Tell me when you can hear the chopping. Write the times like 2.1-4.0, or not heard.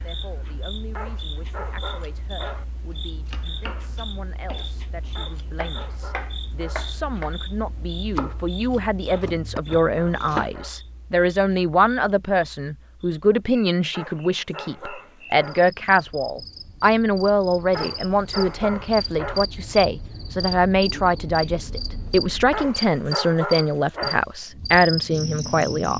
2.9-10.5.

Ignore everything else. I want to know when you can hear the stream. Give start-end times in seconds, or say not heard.
not heard.